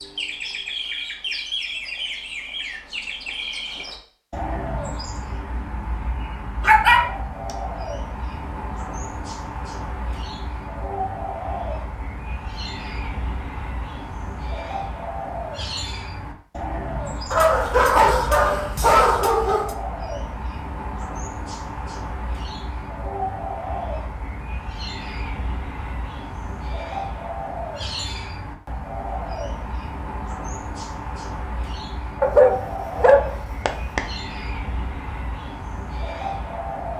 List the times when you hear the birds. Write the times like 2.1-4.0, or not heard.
0.0-36.9.